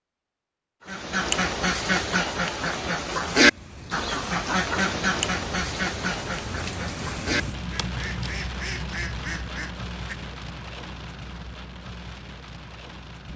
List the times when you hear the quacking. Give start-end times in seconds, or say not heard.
0.8-10.2.